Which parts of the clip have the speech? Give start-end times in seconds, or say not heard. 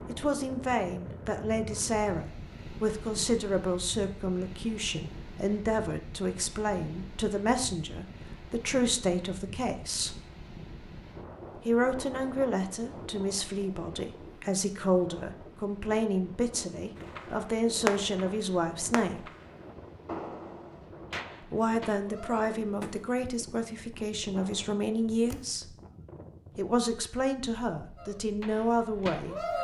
0.1-10.2, 11.7-19.2, 21.5-25.8, 26.6-29.5.